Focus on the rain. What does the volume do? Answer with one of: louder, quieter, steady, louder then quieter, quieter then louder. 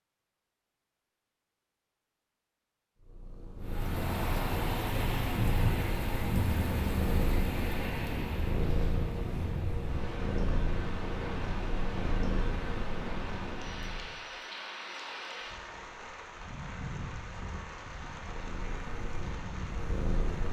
quieter.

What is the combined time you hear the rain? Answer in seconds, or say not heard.
17 s.